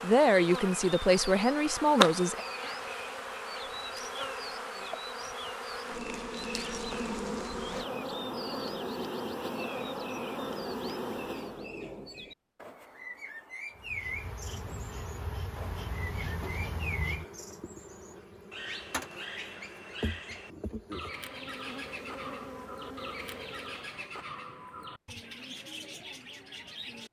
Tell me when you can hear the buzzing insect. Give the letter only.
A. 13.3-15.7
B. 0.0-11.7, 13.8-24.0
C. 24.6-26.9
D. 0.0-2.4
B.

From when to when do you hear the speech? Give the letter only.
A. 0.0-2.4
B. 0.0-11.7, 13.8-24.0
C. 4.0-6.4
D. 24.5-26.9
A.